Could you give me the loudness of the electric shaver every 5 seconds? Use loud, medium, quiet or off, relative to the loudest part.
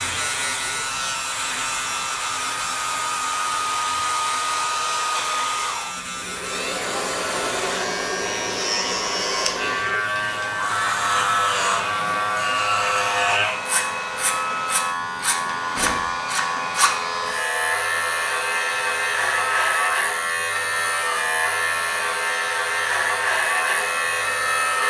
medium, medium, loud, loud, loud.